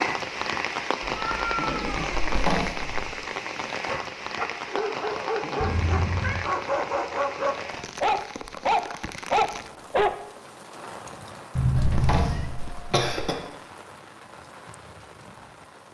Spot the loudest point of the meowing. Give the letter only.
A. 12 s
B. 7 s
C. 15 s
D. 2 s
A.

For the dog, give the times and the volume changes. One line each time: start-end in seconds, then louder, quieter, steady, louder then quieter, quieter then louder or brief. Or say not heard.
3.9-10.2 louder.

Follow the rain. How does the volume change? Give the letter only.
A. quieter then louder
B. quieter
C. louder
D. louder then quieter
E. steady
B.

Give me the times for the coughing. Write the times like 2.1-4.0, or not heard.
2.1-3.0, 11.8-13.4.